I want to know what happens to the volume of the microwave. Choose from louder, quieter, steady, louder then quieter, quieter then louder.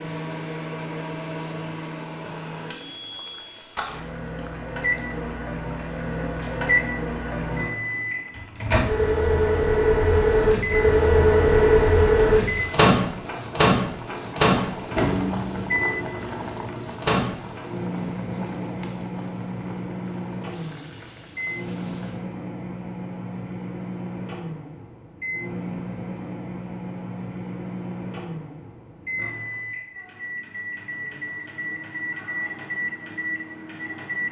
louder then quieter.